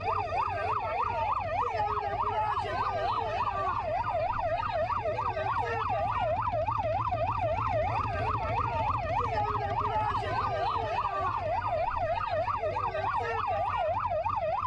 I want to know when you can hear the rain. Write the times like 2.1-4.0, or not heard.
not heard.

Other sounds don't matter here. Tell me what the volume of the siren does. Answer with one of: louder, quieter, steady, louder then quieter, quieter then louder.
steady.